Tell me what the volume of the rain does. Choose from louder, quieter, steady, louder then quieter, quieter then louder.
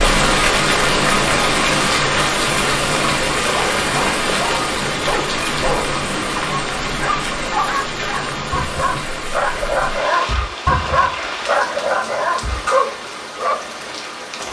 quieter.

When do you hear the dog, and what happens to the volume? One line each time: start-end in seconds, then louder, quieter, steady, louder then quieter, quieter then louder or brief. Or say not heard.
3.4-13.7 louder.